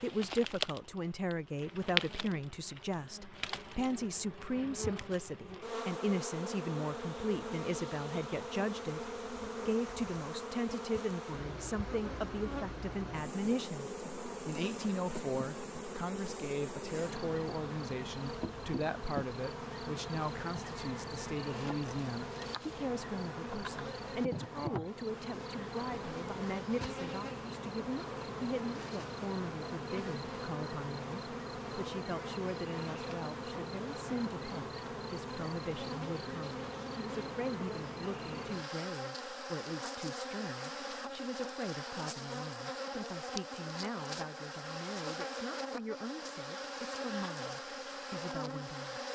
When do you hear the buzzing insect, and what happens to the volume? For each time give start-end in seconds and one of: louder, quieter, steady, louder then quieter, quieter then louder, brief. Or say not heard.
0.0-49.0 steady.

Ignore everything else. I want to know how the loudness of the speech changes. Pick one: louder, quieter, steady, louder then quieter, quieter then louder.
quieter.